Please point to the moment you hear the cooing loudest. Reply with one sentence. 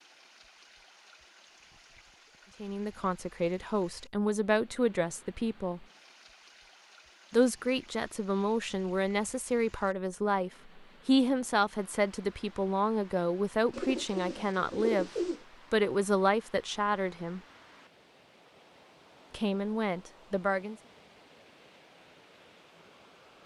The volume of the cooing peaks at 15 seconds.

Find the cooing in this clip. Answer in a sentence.
You can hear the cooing from 13.7 to 15.4 s.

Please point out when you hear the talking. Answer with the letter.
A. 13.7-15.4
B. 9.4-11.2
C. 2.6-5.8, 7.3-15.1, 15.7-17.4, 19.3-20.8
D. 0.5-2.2
C.